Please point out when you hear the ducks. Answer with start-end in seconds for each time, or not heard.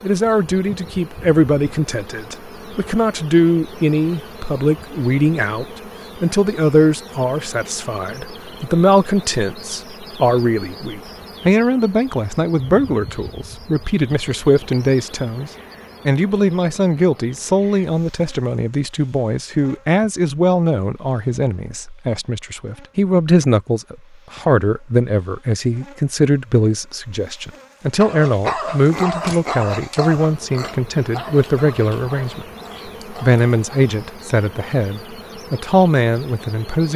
not heard.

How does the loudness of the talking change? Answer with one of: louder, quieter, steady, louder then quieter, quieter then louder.
steady.